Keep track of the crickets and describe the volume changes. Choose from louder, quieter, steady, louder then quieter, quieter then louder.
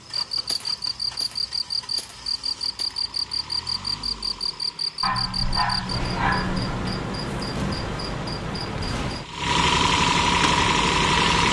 steady.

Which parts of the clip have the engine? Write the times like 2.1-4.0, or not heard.
0.0-11.4.